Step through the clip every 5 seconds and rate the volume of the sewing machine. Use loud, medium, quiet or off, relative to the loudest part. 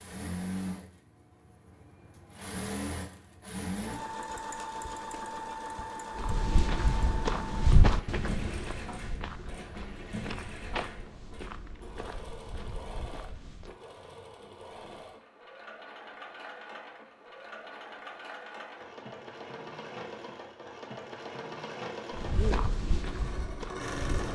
loud, loud, medium, medium, loud.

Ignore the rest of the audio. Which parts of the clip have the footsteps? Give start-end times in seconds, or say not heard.
6.2-13.8, 22.1-24.3.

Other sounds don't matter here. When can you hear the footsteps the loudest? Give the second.
8 s.